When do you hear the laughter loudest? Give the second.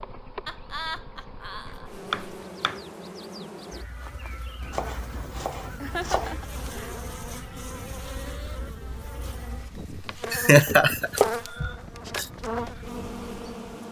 11 s.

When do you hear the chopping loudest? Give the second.
11 s.